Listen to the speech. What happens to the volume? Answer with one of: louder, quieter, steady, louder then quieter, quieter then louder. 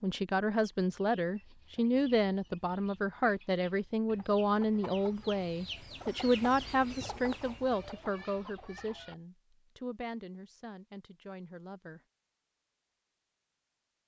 quieter.